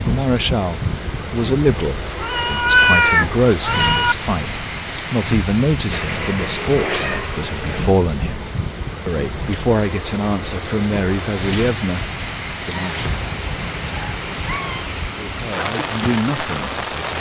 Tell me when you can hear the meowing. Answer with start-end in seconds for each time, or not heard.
2.2-4.2, 5.9-8.0, 12.7-14.9.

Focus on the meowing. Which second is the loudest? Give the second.
3 s.